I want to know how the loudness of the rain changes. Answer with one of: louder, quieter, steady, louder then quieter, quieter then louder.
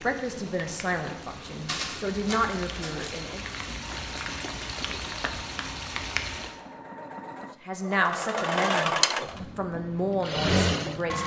louder.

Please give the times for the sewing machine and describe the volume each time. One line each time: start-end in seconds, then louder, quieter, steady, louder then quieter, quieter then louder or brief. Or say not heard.
0.0-11.2 louder.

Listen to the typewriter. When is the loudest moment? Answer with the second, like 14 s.
2 s.